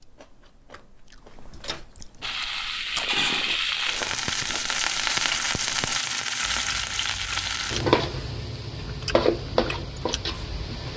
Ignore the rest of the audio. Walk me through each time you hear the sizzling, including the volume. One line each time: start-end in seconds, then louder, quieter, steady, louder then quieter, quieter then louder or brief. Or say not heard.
2.2-10.9 steady.